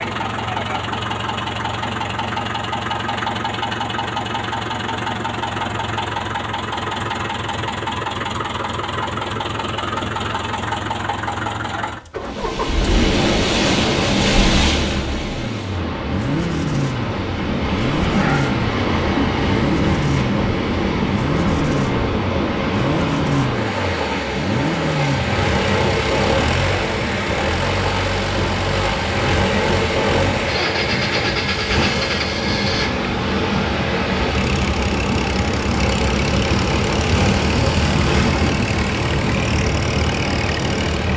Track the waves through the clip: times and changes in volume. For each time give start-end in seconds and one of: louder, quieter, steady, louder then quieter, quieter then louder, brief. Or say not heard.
12.2-41.1 steady.